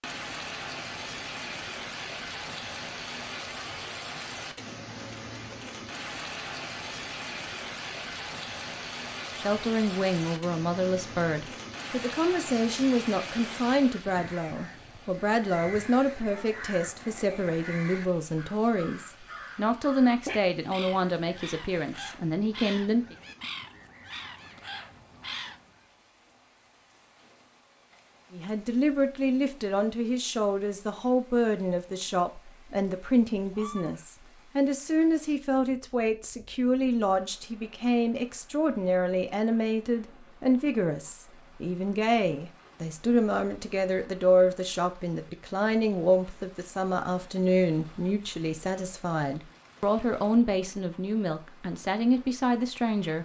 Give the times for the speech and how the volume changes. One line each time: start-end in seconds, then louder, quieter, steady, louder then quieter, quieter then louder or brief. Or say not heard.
9.3-23.1 steady
28.3-53.1 steady.